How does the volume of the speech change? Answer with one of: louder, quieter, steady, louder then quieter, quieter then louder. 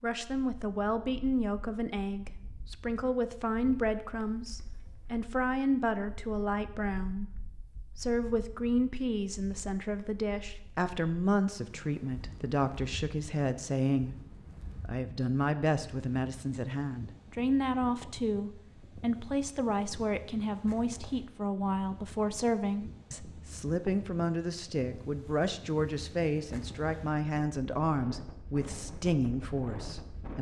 steady.